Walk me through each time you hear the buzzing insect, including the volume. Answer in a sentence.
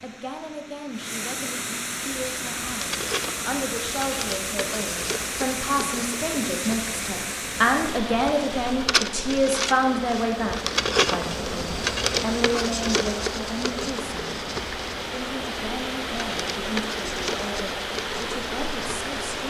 The buzzing insect can be heard from 1.9 to 19.4 s, getting louder then quieter.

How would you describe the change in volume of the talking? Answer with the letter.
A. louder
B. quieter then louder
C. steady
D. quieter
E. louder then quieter
E.